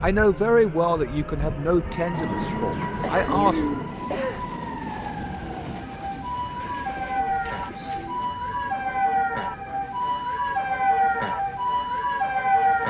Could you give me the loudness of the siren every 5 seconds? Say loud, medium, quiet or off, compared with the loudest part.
quiet, medium, loud.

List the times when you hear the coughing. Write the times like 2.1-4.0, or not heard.
3.0-4.5.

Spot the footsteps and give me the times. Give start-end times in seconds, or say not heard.
not heard.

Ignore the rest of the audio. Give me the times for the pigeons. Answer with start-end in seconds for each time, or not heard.
2.1-3.9, 6.6-8.3.